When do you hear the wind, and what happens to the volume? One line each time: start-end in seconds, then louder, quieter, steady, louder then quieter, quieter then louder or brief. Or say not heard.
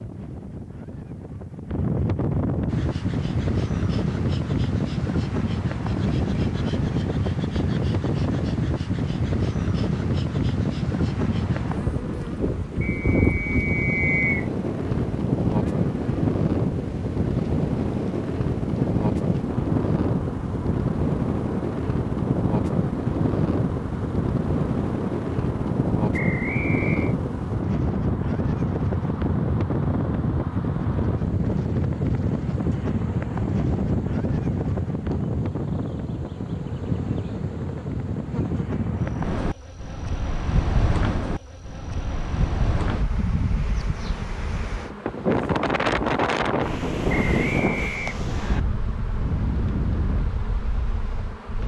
0.0-51.6 steady.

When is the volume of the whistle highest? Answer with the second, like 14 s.
14 s.